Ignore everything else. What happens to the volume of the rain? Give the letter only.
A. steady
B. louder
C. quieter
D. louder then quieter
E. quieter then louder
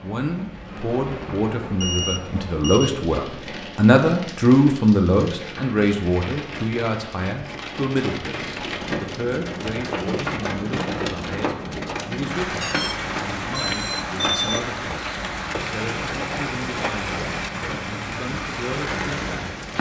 B.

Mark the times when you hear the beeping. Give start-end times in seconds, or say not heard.
1.8-3.0, 12.6-14.6.